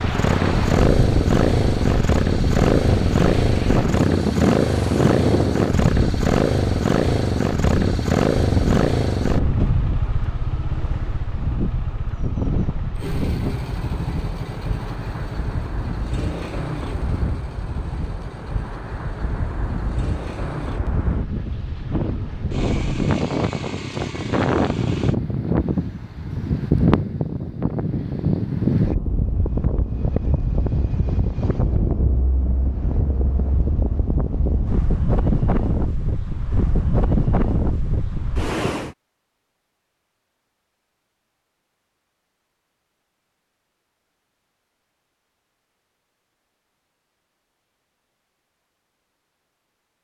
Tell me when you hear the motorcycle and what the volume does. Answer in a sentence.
You can hear the motorcycle from 0.0 to 25.1 s, getting quieter.